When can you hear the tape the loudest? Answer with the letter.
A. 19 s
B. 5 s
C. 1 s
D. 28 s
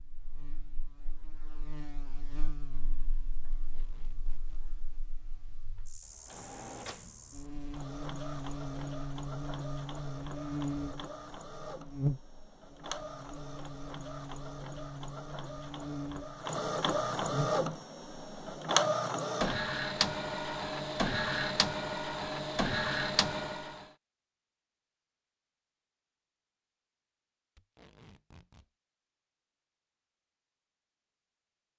D.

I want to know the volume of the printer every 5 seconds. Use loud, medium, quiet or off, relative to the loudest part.
off, quiet, quiet, loud, loud, off, off.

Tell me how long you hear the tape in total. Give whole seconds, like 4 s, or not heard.
2 s.